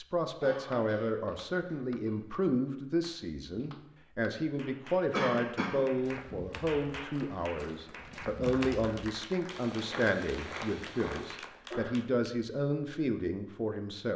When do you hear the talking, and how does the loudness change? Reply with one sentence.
The talking can be heard from 0.0 to 14.1 s, at a steady volume.